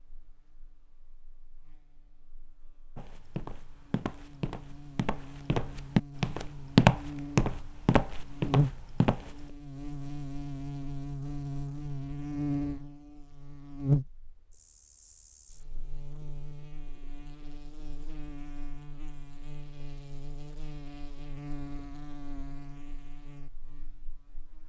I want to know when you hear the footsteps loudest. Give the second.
7 s.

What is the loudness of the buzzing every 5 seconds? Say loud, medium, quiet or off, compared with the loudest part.
quiet, loud, loud, quiet, quiet.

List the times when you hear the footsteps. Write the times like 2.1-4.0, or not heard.
3.0-9.4.